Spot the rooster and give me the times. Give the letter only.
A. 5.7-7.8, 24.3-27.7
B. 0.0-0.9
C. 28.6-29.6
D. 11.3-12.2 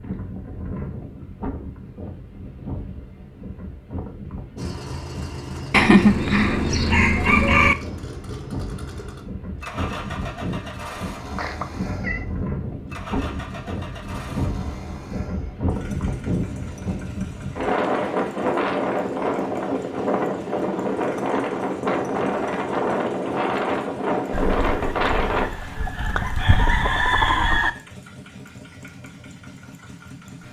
A.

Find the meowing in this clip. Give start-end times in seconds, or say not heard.
11.3-12.2.